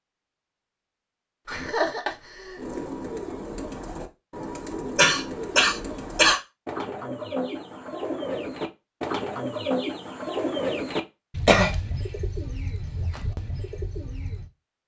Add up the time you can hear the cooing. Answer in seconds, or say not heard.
12 s.